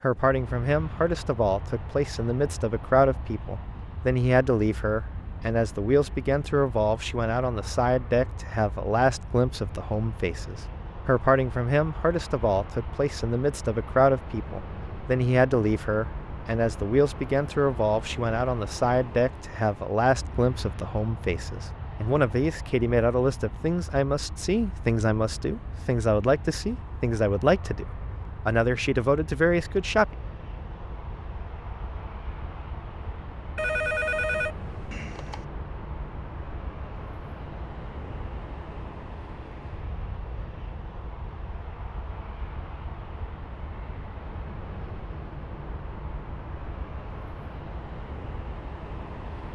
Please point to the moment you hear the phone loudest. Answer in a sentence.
The volume of the phone peaks at 34 seconds.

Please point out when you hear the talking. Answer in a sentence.
The talking can be heard from 0.0 to 30.1 s.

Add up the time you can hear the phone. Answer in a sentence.
You can hear the phone for 2 seconds altogether.